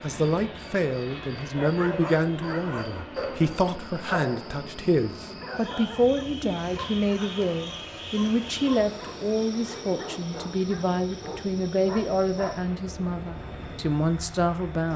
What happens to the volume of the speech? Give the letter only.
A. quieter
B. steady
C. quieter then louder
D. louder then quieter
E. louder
B.